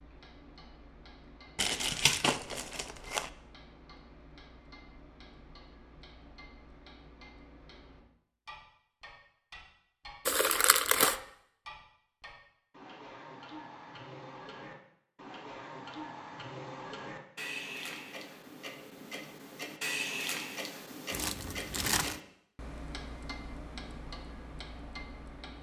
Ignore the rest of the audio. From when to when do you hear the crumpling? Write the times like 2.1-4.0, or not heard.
1.6-3.3, 10.2-11.2, 21.1-22.2.